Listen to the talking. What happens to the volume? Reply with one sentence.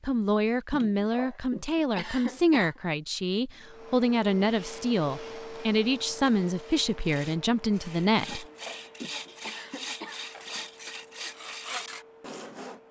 The volume of the talking stays about the same.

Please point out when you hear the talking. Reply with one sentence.
The talking can be heard from 0.0 to 8.4 s.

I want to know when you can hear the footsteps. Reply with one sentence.
You can't hear the footsteps here.